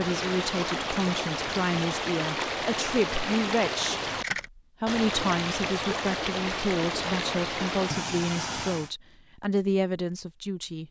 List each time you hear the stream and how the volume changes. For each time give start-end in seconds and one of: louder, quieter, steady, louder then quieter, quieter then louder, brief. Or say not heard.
0.0-8.9 steady.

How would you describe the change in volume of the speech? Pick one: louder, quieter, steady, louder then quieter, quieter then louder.
steady.